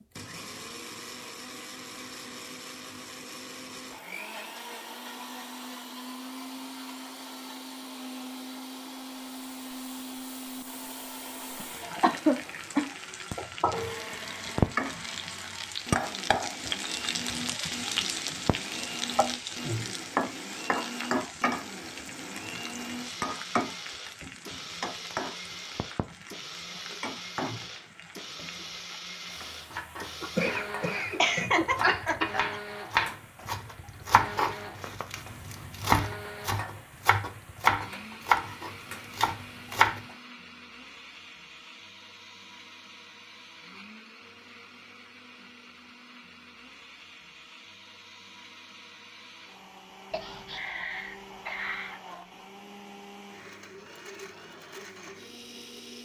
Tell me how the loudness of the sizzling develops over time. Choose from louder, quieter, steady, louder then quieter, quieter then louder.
quieter.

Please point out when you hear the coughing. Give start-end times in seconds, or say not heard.
11.6-12.8, 30.2-32.5, 50.1-52.0.